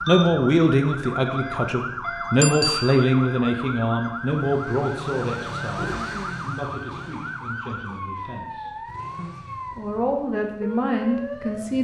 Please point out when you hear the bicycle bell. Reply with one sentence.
The bicycle bell can be heard from 2.4 to 3.0 s.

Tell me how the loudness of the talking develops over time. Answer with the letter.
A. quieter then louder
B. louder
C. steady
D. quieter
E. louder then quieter
A.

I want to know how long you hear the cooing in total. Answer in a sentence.
You can't hear the cooing here.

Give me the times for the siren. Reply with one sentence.
You can hear the siren from 0.0 to 11.7 s.